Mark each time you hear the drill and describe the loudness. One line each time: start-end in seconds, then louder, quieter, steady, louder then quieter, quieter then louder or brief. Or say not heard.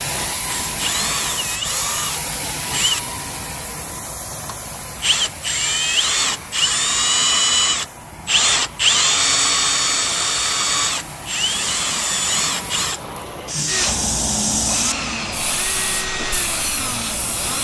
0.3-17.5 louder then quieter.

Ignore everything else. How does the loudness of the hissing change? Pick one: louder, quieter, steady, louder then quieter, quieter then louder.
quieter then louder.